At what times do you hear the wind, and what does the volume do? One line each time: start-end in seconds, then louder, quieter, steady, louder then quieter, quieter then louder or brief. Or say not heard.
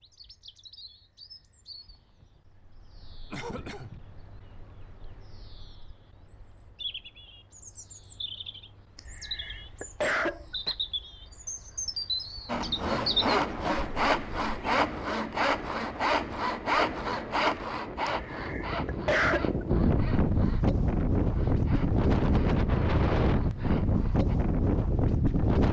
12.6-25.6 louder.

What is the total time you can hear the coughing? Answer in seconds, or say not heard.
4 s.